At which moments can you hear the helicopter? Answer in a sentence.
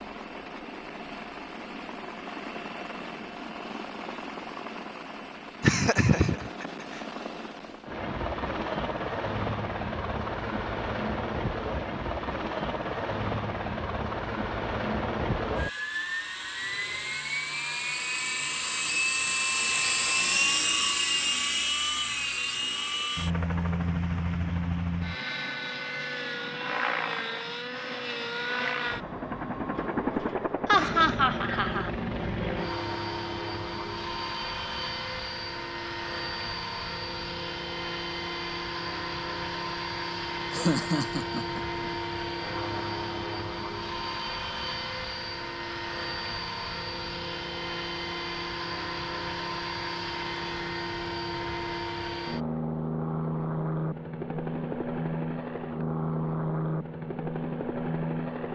You can hear the helicopter from 0.0 to 58.5 s.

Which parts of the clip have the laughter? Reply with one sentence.
You can hear the laughter from 5.6 to 6.7 s, from 30.6 to 31.9 s and from 40.5 to 41.8 s.